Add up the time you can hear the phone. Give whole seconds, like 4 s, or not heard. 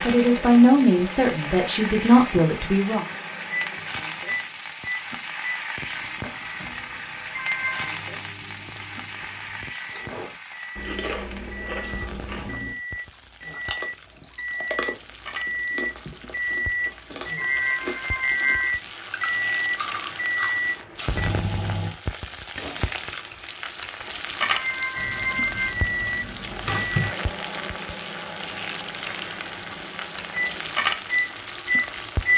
3 s.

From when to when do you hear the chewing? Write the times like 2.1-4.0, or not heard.
9.9-20.6.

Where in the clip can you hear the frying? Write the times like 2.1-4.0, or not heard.
0.0-32.3.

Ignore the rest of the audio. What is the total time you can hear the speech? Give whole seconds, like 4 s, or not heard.
3 s.